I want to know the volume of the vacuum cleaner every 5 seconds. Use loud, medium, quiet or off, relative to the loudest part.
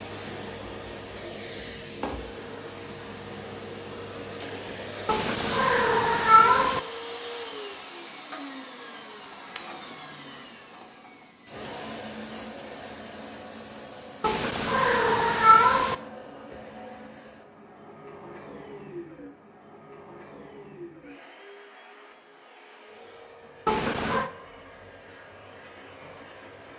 loud, loud, loud, medium, medium, medium.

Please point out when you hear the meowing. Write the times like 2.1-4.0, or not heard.
5.0-6.8, 14.2-15.9, 23.6-24.3.